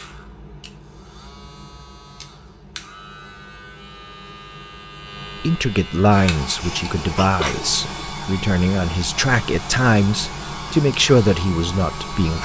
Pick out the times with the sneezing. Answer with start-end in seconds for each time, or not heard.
6.5-8.1.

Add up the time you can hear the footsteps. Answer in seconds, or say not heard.
not heard.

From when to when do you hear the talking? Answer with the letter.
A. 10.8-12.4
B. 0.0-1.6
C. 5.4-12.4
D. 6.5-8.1
C.